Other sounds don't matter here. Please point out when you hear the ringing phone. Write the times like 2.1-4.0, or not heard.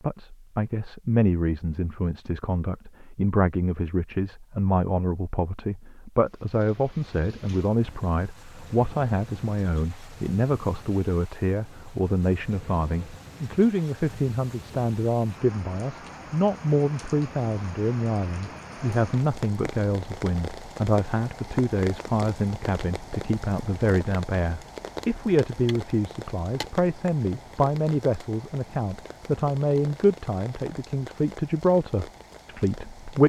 not heard.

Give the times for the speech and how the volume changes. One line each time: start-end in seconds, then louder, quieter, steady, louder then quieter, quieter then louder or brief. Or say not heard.
0.0-33.2 steady.